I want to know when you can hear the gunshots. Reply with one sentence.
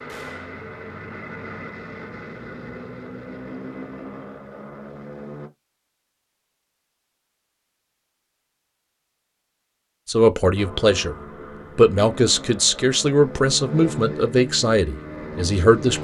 The gunshots can be heard from 0.1 to 0.6 s.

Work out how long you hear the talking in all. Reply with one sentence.
The talking can be heard for 5 seconds in total.